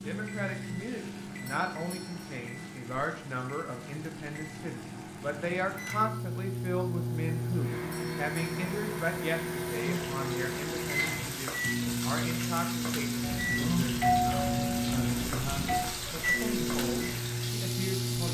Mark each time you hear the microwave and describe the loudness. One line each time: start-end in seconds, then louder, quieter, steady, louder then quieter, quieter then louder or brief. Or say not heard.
0.0-18.2 louder.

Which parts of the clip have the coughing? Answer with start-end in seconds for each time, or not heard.
not heard.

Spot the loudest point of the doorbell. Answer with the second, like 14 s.
14 s.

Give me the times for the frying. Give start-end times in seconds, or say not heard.
0.0-18.2.